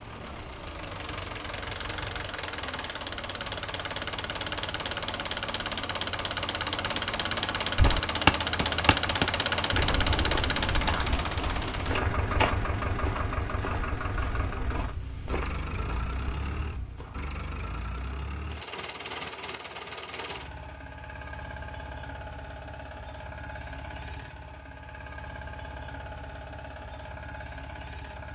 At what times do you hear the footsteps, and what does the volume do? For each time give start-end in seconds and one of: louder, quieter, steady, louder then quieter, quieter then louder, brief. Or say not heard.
7.8-17.3 quieter.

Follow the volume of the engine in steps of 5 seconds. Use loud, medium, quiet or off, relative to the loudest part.
medium, loud, loud, medium, quiet, quiet.